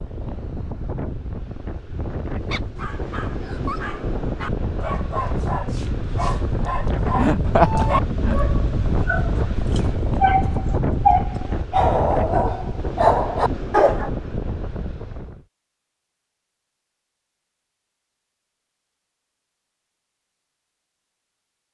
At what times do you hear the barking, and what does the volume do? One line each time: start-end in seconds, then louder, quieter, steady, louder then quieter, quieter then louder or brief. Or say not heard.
2.4-14.1 louder.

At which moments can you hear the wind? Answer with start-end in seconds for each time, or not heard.
0.0-15.4.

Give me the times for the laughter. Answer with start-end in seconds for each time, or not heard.
7.2-8.4.